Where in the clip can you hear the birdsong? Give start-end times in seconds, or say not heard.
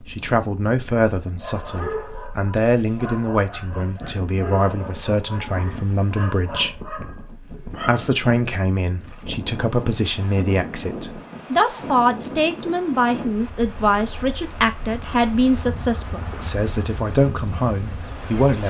not heard.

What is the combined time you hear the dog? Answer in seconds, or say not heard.
7 s.